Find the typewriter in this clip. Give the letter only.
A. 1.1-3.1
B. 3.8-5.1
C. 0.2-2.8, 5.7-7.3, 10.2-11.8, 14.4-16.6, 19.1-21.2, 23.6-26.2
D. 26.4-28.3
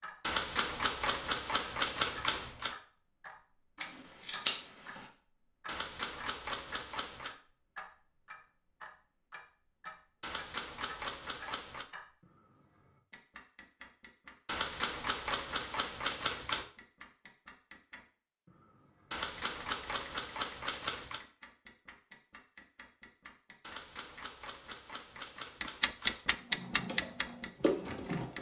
C.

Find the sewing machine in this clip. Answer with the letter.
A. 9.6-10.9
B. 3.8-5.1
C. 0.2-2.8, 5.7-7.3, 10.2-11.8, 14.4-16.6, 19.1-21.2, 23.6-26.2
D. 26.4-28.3
D.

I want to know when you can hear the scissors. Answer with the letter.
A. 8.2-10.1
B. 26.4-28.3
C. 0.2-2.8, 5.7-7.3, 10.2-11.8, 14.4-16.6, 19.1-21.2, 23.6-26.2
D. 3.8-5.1
D.